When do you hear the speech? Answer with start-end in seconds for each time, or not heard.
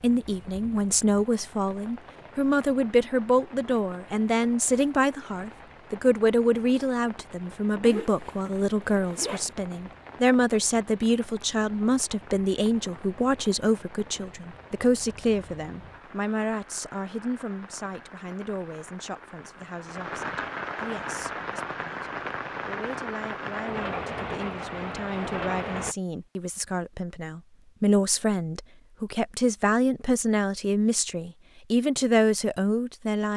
0.0-33.3.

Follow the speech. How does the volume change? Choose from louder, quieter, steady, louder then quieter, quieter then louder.
quieter then louder.